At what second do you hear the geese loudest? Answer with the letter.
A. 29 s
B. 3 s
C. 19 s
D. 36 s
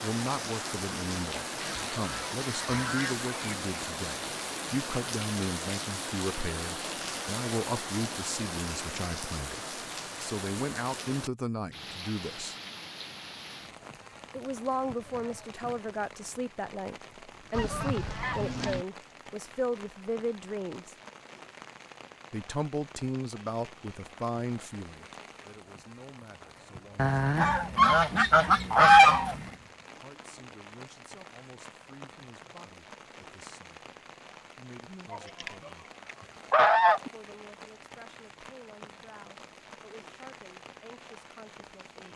A.